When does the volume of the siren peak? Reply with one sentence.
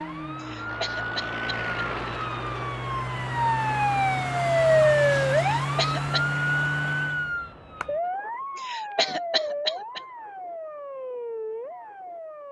The volume of the siren peaks at 5 seconds.